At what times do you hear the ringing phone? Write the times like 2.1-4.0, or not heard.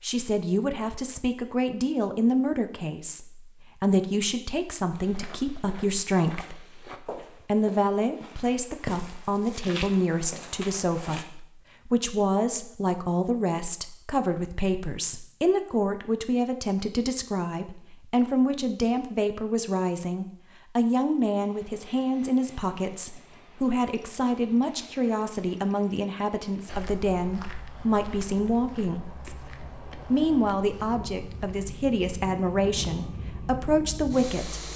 not heard.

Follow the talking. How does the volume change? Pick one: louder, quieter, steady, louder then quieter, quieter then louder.
steady.